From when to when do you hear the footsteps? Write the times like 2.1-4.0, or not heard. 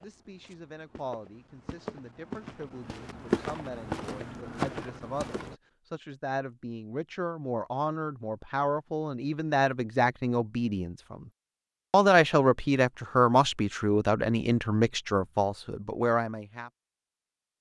0.0-5.5.